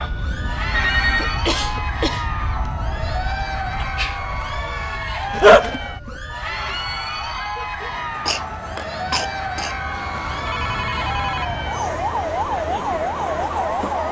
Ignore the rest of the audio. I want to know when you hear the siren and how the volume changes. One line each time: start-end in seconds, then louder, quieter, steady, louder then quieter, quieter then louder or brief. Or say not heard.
0.0-14.0 quieter then louder.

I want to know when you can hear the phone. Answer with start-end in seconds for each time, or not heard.
0.2-1.4, 5.3-5.8, 9.9-12.2.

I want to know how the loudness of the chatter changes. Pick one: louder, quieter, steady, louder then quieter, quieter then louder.
steady.